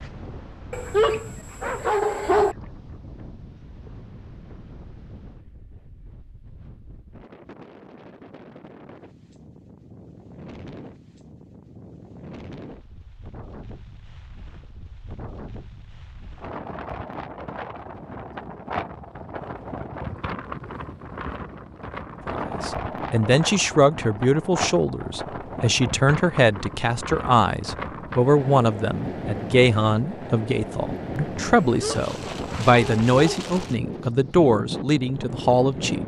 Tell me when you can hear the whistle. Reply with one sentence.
The whistle can't be heard in this clip.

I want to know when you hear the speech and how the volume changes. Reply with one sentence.
The speech can be heard from 22.2 to 36.0 s, at a steady volume.